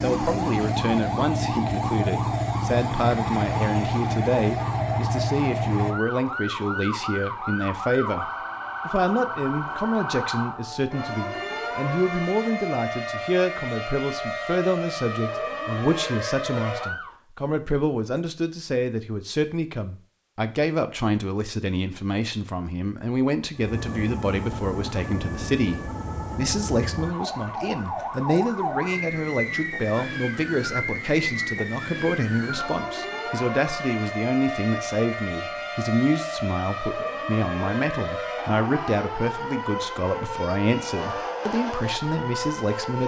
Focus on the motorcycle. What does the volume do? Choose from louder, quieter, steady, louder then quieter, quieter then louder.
steady.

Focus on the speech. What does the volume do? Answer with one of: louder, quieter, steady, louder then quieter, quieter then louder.
steady.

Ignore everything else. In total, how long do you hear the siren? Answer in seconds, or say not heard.
37 s.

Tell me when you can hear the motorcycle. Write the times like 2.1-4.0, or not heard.
0.0-6.0.